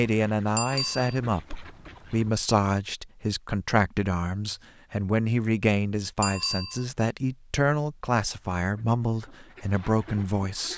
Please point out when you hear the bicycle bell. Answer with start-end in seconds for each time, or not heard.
0.6-1.1, 6.2-6.8.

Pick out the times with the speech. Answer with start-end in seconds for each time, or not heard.
0.0-10.7.